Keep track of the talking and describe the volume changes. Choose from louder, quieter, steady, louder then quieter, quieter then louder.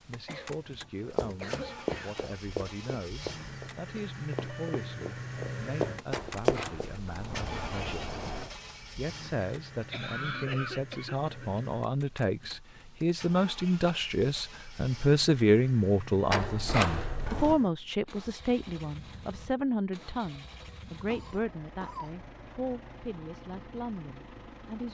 louder then quieter.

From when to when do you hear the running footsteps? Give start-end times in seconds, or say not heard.
1.1-6.9.